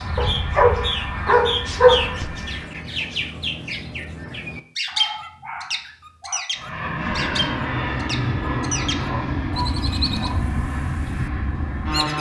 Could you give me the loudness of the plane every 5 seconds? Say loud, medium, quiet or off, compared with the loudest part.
medium, loud, loud.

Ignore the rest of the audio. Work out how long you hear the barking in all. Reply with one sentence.
The barking can be heard for 5 seconds in total.